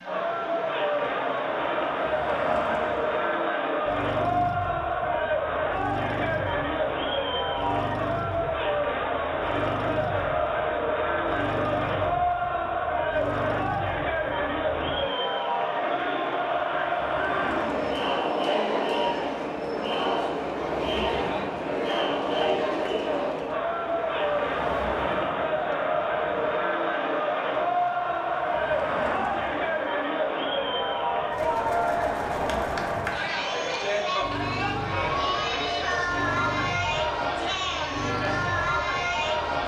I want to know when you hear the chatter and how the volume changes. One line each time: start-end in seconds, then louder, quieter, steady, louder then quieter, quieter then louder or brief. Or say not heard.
0.0-39.6 steady.